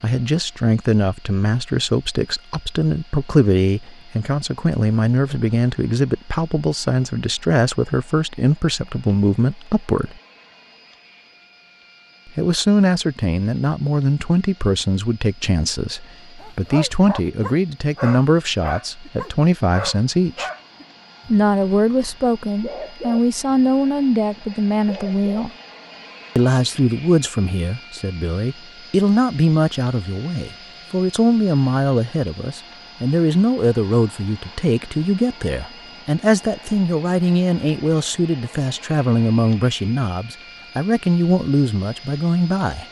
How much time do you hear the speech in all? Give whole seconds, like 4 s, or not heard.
39 s.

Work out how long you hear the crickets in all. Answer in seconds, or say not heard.
not heard.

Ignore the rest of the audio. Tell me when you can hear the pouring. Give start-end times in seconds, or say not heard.
not heard.